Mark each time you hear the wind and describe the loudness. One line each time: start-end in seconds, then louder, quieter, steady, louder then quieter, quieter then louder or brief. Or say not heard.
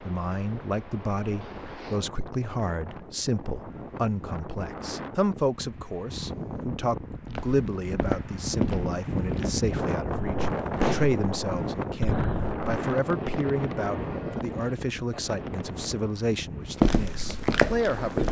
0.0-18.2 louder then quieter.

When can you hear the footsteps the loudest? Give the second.
17 s.